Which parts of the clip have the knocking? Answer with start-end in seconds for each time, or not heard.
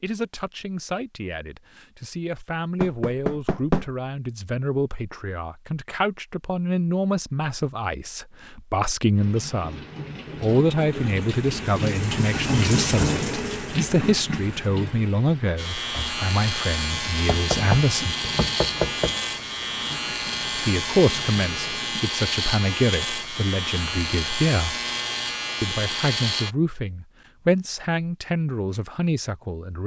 2.8-3.9, 17.2-19.1.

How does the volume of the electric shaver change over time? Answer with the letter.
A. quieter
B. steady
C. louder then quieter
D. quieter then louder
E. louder
B.